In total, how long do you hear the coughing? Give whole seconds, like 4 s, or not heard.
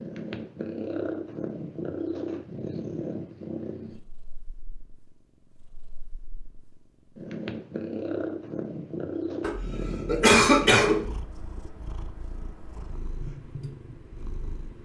2 s.